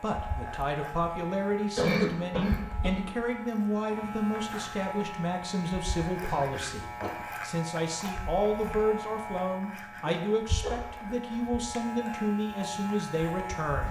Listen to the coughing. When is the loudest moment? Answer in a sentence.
The volume of the coughing peaks at 2 seconds.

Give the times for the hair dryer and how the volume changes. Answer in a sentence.
The hair dryer can't be heard in this clip.